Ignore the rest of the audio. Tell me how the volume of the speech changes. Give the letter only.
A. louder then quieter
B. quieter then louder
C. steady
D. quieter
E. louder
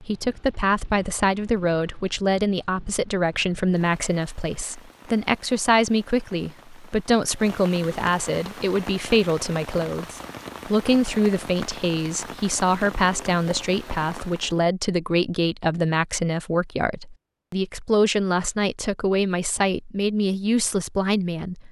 C.